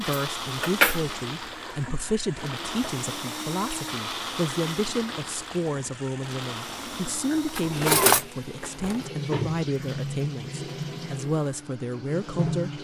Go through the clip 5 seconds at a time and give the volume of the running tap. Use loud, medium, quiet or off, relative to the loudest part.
medium, loud, loud.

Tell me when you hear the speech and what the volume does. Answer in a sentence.
You can hear the speech from 0.0 to 12.7 s, at a steady volume.